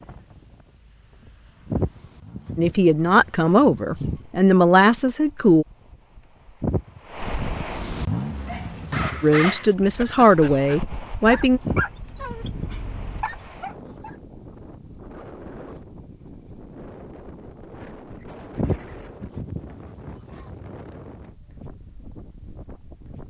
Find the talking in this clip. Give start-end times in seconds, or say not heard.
2.5-5.7, 9.2-11.6.